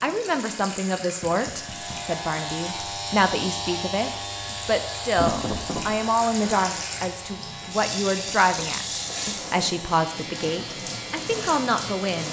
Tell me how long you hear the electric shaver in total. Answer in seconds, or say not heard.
11 s.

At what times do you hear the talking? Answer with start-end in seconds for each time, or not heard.
0.0-12.2.